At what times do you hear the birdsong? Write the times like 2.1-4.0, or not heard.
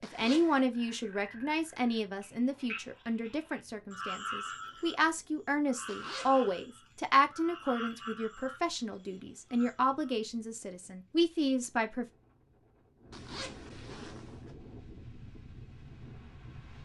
not heard.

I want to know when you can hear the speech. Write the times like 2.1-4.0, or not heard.
0.0-12.1.